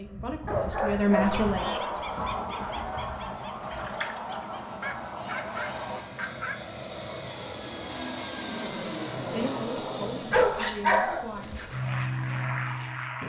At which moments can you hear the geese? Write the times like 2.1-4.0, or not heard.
1.1-6.5.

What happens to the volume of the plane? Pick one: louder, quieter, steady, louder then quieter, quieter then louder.
louder.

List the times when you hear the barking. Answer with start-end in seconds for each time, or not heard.
0.5-2.4, 4.8-6.7, 10.1-11.8.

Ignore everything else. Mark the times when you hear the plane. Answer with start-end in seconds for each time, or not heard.
0.0-13.2.